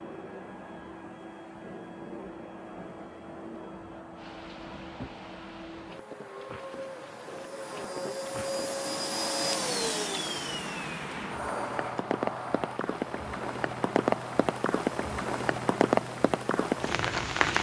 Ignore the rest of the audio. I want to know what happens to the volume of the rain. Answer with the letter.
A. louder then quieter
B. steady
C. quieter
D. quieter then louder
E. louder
E.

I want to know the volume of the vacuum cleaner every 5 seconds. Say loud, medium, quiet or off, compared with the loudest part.
medium, loud, loud, off.